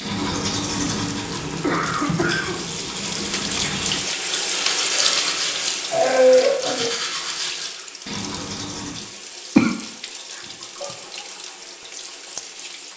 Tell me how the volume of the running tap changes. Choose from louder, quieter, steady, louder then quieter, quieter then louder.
louder then quieter.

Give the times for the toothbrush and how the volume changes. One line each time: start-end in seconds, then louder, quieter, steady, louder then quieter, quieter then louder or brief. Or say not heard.
0.0-9.1 steady.